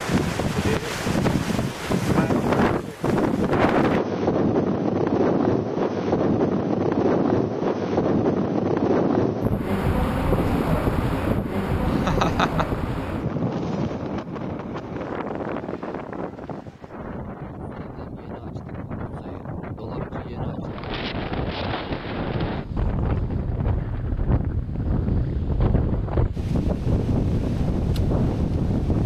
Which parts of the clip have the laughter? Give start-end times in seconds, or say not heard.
11.8-12.8.